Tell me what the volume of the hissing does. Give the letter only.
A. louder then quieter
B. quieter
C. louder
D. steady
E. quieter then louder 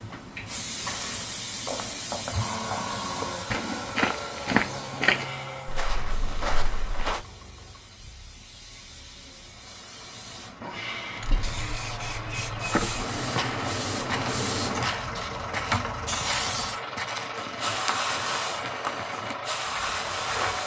E.